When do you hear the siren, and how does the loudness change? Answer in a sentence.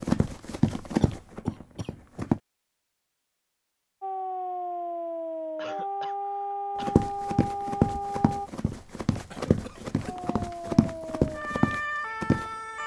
The siren can be heard from 4.0 to 8.5 s, at a steady volume; and briefly from 10.1 to 12.8 s.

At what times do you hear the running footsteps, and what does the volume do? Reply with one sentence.
The running footsteps can be heard briefly from 0.0 to 2.4 s; and from 6.8 to 12.4 s, getting quieter then louder.